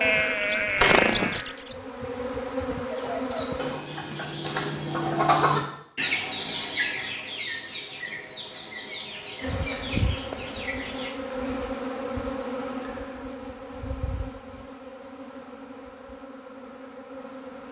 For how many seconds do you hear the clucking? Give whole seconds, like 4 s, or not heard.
8 s.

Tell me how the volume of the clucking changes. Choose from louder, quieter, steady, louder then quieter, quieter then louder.
louder then quieter.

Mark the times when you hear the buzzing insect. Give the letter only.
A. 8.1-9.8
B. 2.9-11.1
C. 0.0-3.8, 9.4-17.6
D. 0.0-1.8
C.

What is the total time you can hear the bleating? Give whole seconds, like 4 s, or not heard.
2 s.